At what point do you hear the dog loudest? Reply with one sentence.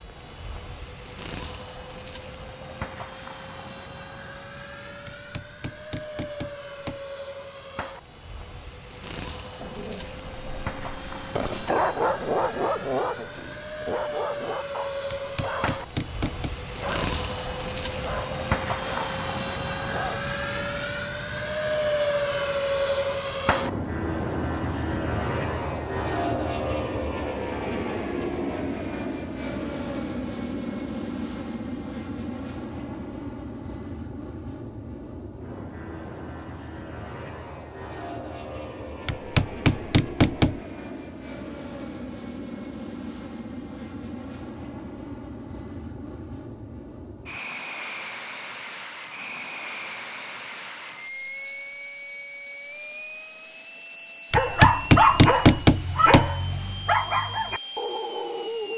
The volume of the dog peaks at 55 seconds.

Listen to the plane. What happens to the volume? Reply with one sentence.
The loudness of the plane goes up, then down.